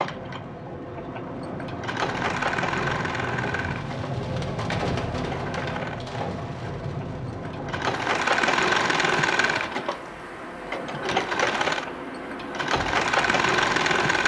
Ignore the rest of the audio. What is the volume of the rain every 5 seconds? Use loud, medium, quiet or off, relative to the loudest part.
loud, loud, medium.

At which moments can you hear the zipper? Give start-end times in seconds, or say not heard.
not heard.